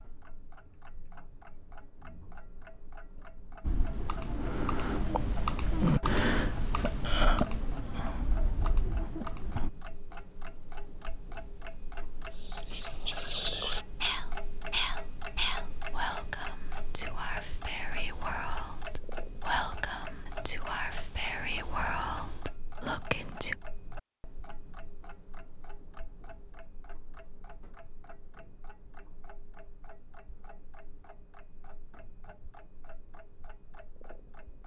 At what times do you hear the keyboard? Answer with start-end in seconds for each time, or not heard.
3.6-9.7.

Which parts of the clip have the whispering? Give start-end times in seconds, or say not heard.
12.3-23.6.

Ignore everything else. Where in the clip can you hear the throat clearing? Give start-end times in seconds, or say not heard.
not heard.